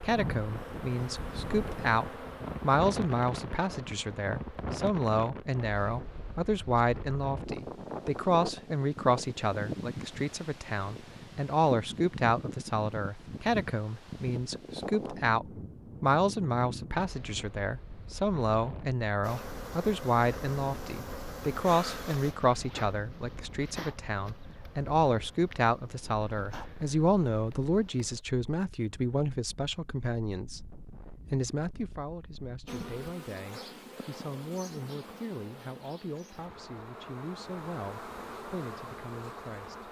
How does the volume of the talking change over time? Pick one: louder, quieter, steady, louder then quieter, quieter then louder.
quieter.